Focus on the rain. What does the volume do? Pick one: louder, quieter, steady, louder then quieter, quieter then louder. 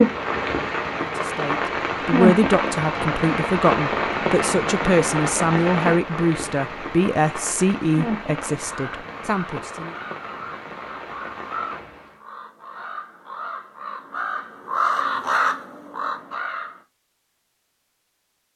quieter.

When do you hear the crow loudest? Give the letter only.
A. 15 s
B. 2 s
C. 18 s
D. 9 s
A.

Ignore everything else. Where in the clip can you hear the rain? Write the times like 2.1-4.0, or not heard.
0.0-12.2.